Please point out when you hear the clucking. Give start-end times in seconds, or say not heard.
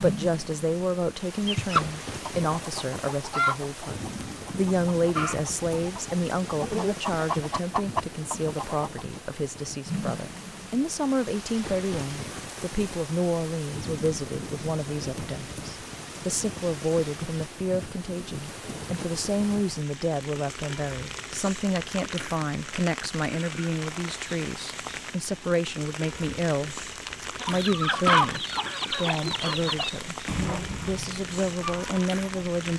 1.4-9.0, 27.4-32.7.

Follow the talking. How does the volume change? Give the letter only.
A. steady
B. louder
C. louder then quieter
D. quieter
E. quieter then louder
A.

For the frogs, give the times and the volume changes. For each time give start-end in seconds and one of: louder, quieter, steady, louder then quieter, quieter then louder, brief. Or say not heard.
not heard.